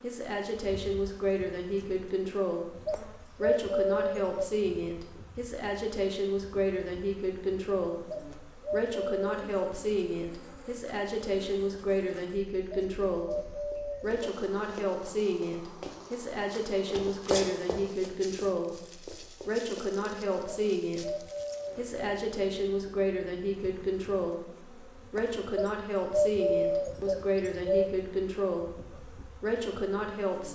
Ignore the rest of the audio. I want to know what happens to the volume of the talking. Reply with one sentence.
The volume of the talking stays about the same.